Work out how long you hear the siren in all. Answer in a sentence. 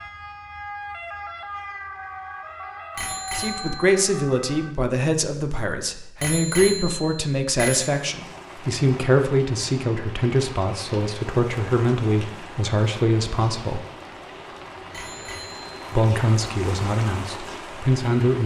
You can hear the siren for 5 seconds altogether.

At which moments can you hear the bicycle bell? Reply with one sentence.
You can hear the bicycle bell from 3.0 to 3.9 s, from 6.2 to 7.9 s and from 14.9 to 15.8 s.